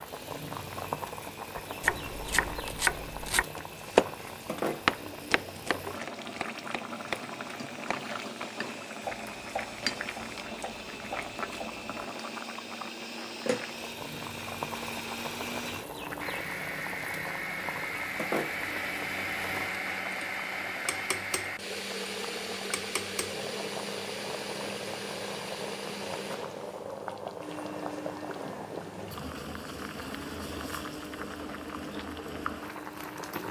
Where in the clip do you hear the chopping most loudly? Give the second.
4 s.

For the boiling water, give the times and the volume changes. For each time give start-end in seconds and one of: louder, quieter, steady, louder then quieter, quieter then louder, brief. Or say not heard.
0.0-33.4 steady.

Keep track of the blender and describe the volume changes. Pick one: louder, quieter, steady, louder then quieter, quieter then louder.
louder then quieter.